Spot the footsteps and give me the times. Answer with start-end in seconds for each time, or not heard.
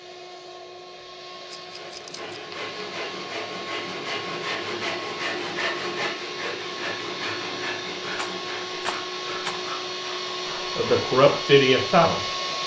not heard.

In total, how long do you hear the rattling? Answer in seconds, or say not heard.
2 s.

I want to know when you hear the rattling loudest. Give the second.
9 s.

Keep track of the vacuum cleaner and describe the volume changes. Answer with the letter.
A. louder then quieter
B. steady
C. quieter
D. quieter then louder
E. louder
E.